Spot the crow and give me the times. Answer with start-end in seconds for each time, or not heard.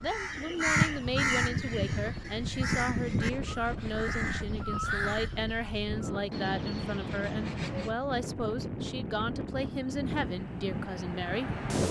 0.1-6.2.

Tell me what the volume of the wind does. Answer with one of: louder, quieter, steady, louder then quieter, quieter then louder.
louder.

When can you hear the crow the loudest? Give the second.
1 s.